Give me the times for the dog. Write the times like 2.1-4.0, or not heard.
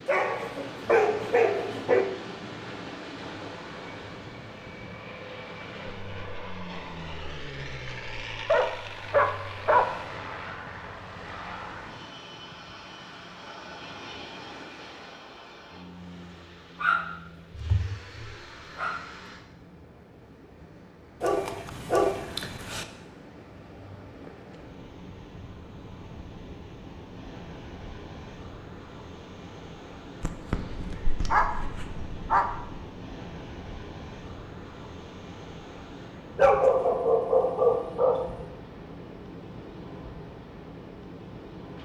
0.1-2.0, 8.4-9.9, 16.8-19.0, 21.2-22.9, 30.2-32.8, 36.4-38.5.